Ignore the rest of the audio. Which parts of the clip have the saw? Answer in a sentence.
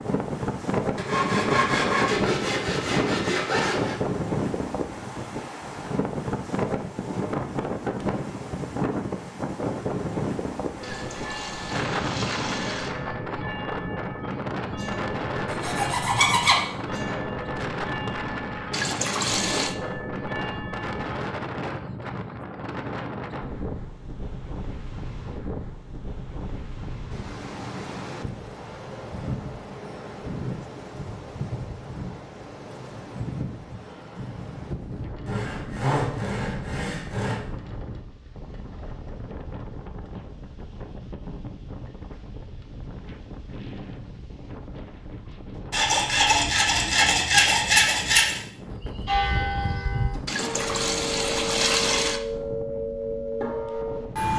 The saw can be heard from 0.9 to 4.0 s, from 15.5 to 16.6 s, from 35.2 to 37.4 s and from 45.7 to 48.4 s.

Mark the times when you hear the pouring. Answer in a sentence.
The pouring can be heard from 10.8 to 12.9 s, from 18.7 to 19.8 s and from 50.2 to 52.2 s.